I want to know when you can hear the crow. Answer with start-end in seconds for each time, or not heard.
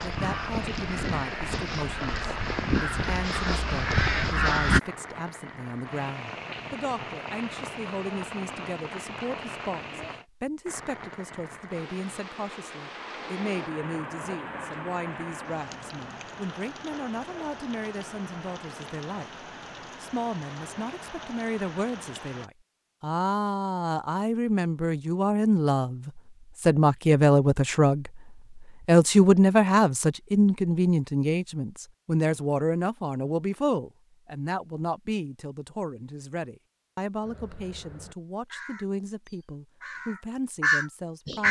0.0-4.8, 37.2-41.4.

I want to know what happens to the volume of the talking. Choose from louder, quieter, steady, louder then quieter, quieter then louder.
louder then quieter.